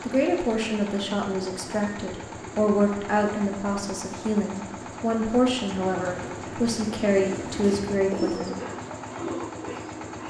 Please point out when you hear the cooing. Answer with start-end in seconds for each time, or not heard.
5.7-10.2.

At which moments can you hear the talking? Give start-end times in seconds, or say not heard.
0.0-8.6.